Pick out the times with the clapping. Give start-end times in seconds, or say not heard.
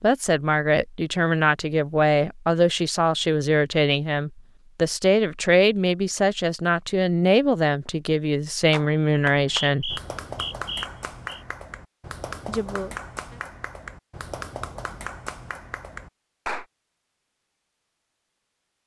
8.7-16.6.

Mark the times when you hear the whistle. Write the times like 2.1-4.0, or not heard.
9.3-11.4.